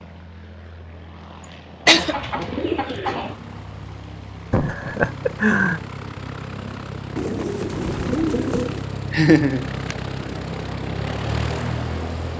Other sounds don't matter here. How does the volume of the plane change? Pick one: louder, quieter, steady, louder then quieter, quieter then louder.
louder.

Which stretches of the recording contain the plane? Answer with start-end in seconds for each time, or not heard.
0.0-12.3.